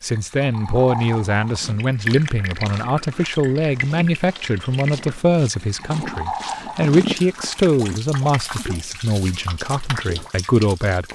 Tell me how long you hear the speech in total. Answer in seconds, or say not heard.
11 s.